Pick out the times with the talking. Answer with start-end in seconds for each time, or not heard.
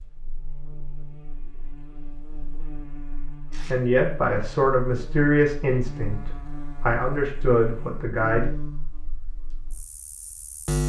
3.7-8.5.